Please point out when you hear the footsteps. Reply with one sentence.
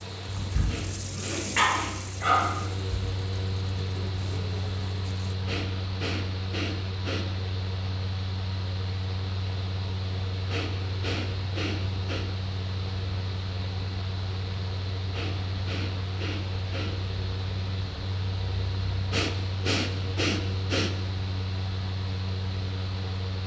The footsteps can't be heard in this clip.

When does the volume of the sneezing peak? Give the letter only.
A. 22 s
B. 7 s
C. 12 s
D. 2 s
D.